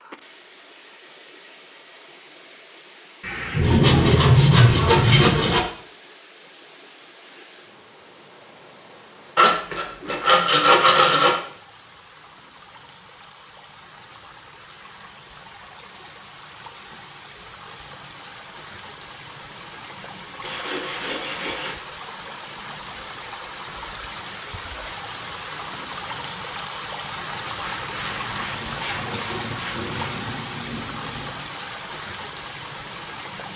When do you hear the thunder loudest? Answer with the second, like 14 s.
4 s.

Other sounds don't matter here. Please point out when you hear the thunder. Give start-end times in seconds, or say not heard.
3.2-5.0, 28.1-31.4.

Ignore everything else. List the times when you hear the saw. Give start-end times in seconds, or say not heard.
3.6-5.6, 9.3-11.4, 20.4-21.8, 27.6-30.1.